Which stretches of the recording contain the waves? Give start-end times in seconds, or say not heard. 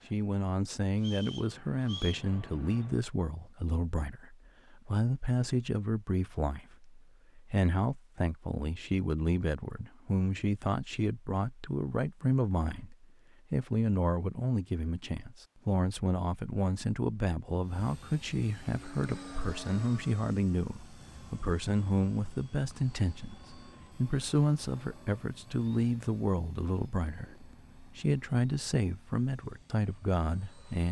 not heard.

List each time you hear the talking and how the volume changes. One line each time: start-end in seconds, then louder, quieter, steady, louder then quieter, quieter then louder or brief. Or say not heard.
0.1-30.8 steady.